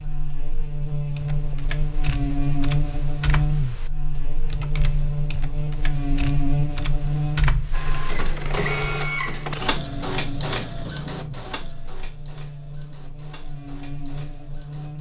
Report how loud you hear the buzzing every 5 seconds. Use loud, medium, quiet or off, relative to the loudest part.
loud, loud, medium.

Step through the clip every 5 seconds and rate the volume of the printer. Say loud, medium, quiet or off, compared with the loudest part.
off, loud, medium.